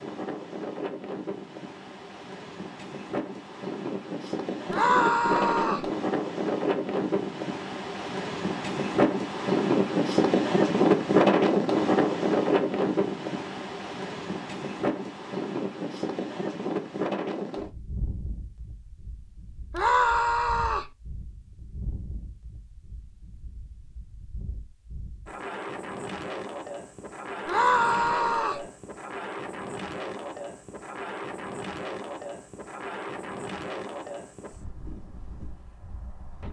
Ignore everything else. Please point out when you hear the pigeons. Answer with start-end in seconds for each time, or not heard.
not heard.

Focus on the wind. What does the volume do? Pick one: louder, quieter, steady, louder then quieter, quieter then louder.
louder then quieter.